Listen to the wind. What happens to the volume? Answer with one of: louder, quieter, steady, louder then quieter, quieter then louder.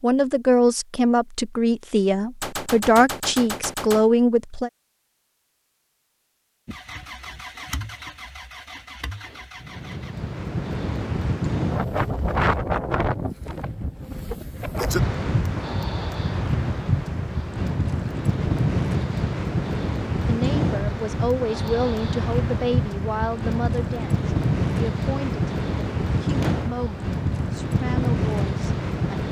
steady.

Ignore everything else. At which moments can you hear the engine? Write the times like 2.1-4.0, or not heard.
6.7-10.2.